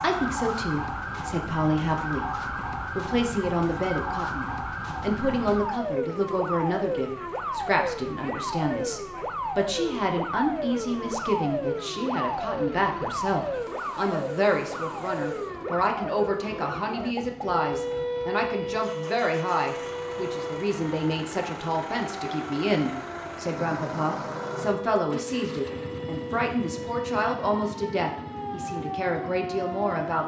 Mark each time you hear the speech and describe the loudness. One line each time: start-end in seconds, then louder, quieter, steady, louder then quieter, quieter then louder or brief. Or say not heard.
0.0-30.2 steady.